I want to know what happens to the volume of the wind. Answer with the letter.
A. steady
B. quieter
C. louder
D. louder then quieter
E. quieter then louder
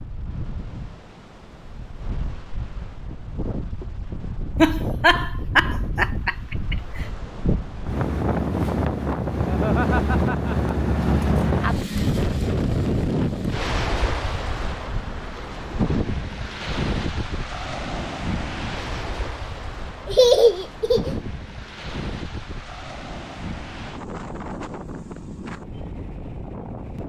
D.